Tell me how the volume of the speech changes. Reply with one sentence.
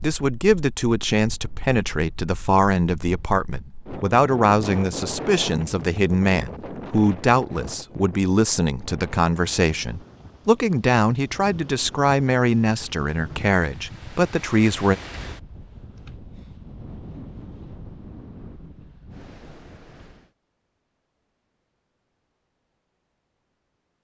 The volume of the speech stays about the same.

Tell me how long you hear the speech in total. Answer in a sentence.
The speech can be heard for 15 seconds in total.